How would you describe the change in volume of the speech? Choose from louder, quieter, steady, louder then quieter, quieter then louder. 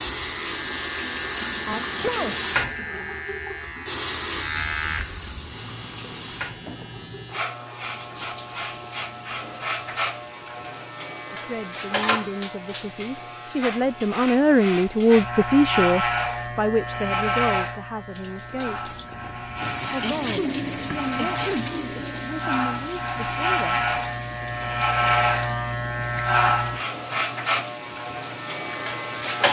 louder then quieter.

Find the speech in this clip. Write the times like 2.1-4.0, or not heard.
11.3-18.9, 19.9-23.9.